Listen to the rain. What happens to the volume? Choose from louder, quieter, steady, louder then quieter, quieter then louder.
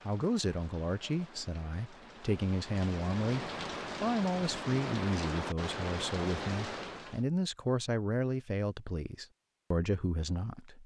louder.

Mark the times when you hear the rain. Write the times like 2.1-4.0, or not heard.
0.0-7.2.